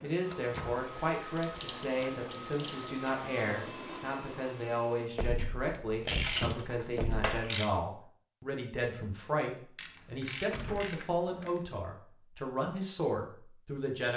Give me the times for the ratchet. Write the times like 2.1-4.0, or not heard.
1.4-3.0, 5.7-7.7, 9.8-11.6.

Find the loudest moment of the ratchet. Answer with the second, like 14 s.
6 s.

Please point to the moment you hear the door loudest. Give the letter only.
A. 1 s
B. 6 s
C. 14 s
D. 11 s
B.